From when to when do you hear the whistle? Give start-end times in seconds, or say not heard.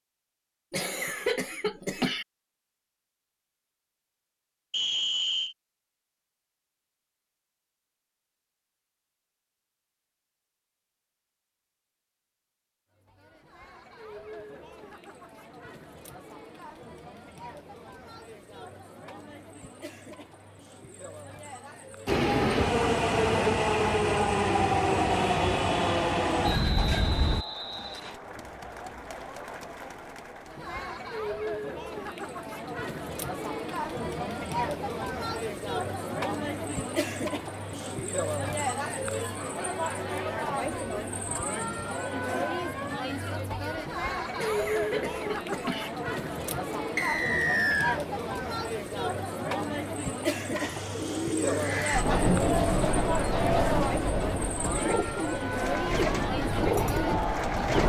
4.7-5.5, 26.4-28.2, 47.0-48.0.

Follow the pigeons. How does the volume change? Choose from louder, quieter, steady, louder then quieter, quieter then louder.
steady.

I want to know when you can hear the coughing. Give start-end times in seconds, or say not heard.
0.7-2.2, 44.4-45.9.